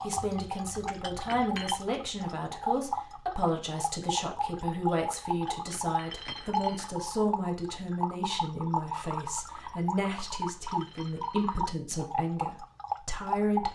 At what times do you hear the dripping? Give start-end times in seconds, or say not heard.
0.0-13.7.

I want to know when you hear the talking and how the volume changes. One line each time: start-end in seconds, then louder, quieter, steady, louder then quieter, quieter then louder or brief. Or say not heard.
0.0-13.7 steady.